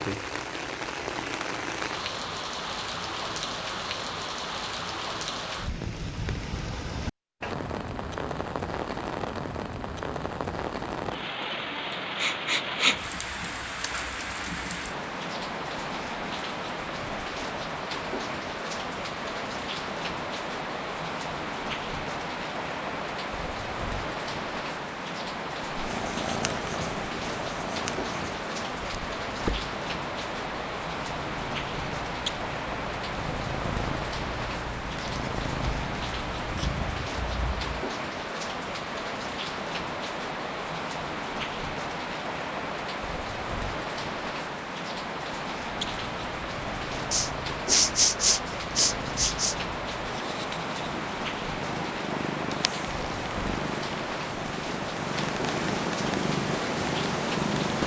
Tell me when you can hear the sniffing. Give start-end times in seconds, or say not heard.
12.2-12.9, 47.1-49.5.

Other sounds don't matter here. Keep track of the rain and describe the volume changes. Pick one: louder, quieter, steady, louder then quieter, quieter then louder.
steady.